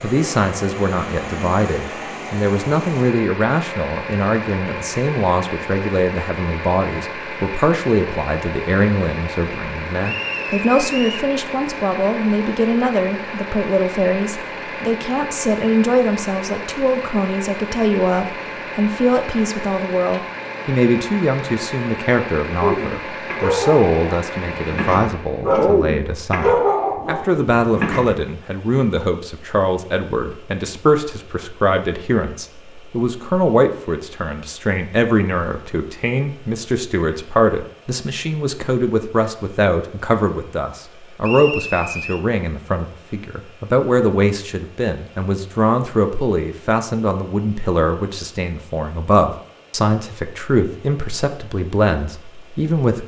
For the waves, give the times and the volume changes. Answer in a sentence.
You can't hear the waves here.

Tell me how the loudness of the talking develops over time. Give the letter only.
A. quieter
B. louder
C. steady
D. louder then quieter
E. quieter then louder
C.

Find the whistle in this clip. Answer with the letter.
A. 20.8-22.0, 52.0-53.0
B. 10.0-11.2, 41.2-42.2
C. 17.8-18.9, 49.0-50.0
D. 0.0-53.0
B.